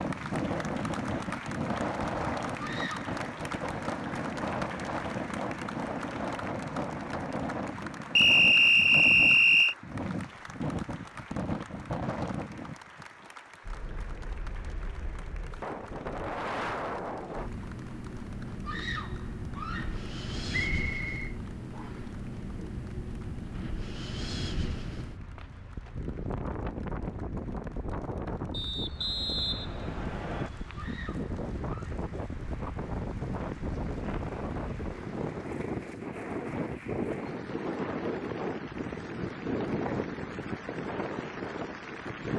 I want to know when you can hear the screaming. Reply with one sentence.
The screaming can be heard from 2.5 to 3.1 s, from 18.6 to 20.0 s and from 30.8 to 31.9 s.